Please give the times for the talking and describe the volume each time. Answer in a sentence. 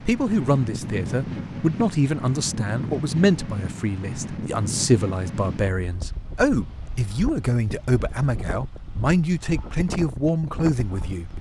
The talking can be heard from 0.1 to 11.3 s, at a steady volume.